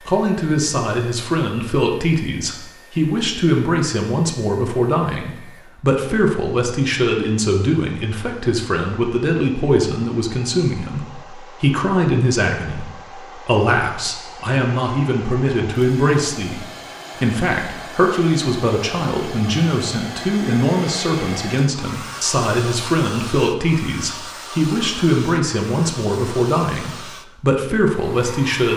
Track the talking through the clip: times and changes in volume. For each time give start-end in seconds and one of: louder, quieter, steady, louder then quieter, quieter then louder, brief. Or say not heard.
0.0-28.7 steady.